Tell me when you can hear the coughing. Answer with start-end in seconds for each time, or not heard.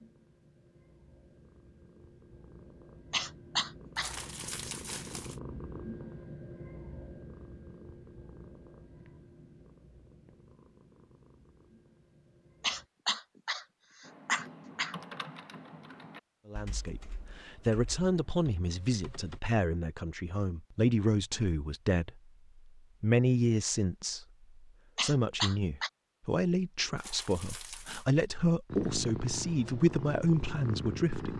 3.1-4.2, 12.6-14.9, 24.9-25.9.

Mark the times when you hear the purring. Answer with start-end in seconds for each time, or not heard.
0.0-12.9, 28.6-31.3.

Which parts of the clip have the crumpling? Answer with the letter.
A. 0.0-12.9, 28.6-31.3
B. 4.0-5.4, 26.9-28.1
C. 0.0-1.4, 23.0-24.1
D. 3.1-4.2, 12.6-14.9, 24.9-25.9
B.